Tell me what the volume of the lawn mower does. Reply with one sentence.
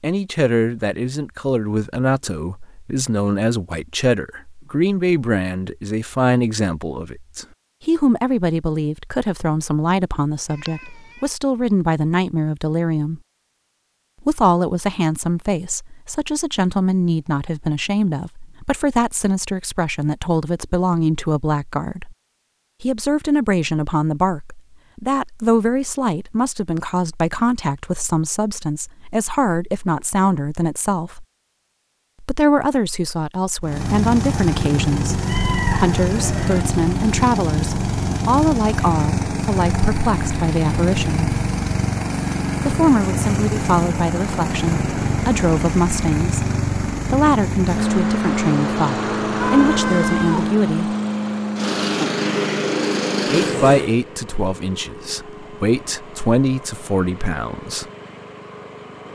The volume of the lawn mower goes down.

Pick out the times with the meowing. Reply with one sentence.
You can hear the meowing from 10.6 to 11.2 s, from 35.2 to 36.6 s and from 49.4 to 50.5 s.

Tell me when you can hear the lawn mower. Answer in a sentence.
You can hear the lawn mower from 33.6 to 59.0 s.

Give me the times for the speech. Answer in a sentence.
You can hear the speech from 0.0 to 13.2 s, from 14.2 to 22.1 s, from 22.8 to 31.2 s, from 32.2 to 41.3 s, from 42.6 to 51.0 s and from 53.3 to 57.9 s.